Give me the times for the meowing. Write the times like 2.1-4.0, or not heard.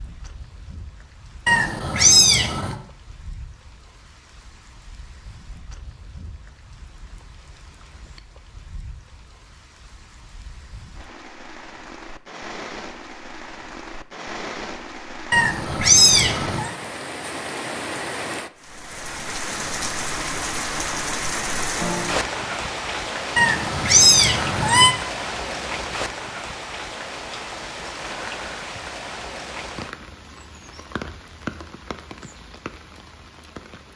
1.4-2.8, 15.3-16.7, 23.4-24.9.